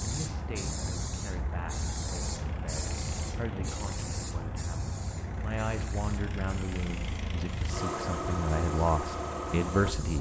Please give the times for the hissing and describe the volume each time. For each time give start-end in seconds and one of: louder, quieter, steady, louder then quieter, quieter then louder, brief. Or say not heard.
0.0-10.1 quieter.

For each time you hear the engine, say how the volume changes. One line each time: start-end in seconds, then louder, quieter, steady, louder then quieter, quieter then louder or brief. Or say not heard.
0.0-10.1 louder.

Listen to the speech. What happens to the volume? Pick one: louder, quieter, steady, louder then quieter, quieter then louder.
louder.